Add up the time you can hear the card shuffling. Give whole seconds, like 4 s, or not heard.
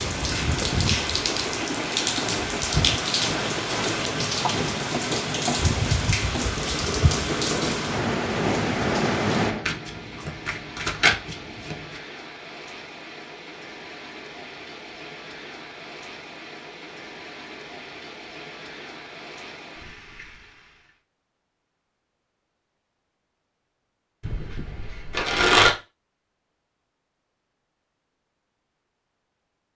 4 s.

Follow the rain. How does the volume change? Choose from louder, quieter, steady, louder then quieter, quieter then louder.
quieter.